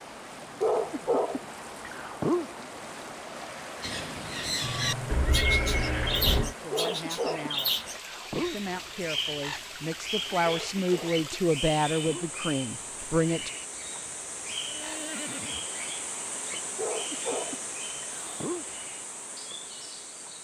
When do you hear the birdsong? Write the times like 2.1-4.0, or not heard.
3.8-20.3.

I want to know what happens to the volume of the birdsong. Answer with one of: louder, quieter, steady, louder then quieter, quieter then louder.
quieter.